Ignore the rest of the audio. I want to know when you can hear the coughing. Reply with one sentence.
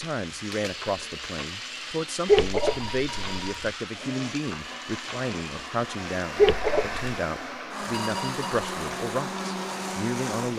You can hear the coughing from 2.2 to 3.5 s and from 6.3 to 7.0 s.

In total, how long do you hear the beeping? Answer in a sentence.
You can hear the beeping for 2 seconds altogether.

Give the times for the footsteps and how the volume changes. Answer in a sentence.
You can't hear the footsteps here.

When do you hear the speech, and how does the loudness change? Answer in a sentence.
You can hear the speech from 0.0 to 10.5 s, at a steady volume.